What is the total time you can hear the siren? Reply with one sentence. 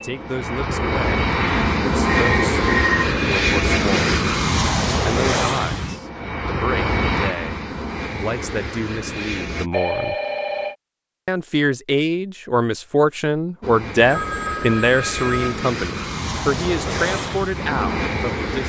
The siren can't be heard in this clip.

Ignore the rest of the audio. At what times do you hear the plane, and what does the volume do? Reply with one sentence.
You can hear the plane from 0.0 to 9.7 s, getting quieter; and from 13.6 to 18.6 s, getting louder.